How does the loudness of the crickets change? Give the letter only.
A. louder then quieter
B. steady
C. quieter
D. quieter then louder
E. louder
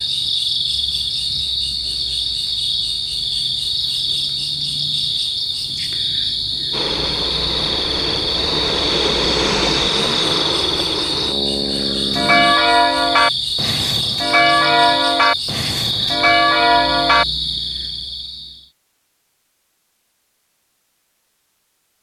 B.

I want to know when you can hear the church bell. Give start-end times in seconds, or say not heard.
12.1-17.2.